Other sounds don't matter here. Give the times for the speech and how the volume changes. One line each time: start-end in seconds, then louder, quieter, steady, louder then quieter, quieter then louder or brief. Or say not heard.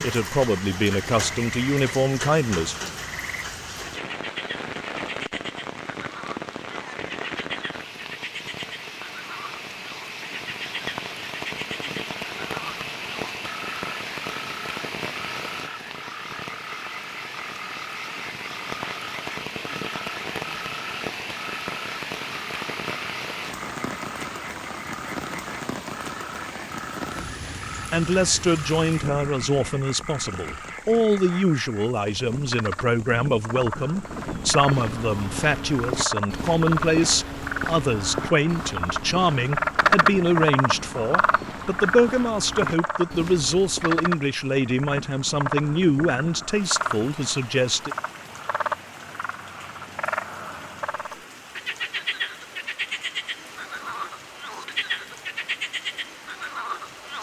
0.0-2.8 brief
27.9-48.0 steady.